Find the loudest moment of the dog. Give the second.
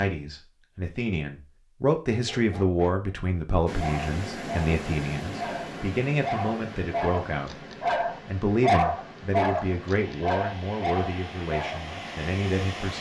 9 s.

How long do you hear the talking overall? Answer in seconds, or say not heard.
13 s.